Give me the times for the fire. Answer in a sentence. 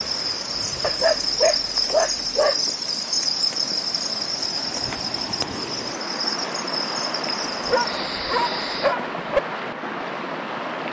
You can't hear the fire here.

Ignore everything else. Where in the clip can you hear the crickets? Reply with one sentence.
The crickets can be heard from 0.0 to 8.9 s.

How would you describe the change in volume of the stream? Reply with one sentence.
The loudness of the stream goes up.